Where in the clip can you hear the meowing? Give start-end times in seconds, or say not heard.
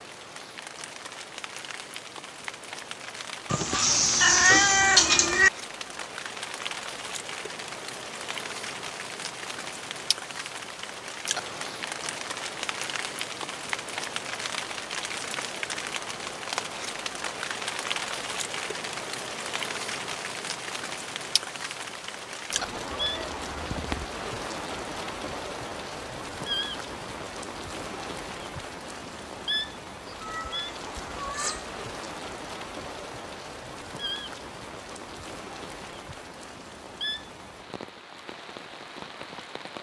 3.5-5.5, 22.9-24.1, 30.2-31.7.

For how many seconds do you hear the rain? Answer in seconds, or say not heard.
40 s.